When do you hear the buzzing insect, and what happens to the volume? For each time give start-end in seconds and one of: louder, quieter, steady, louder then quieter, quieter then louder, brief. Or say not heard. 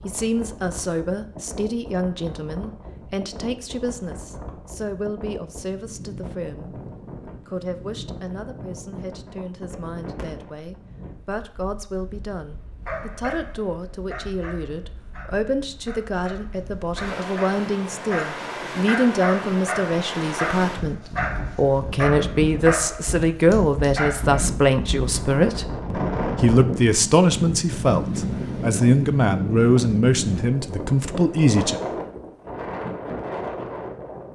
not heard.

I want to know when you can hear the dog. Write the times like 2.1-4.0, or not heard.
12.8-24.4.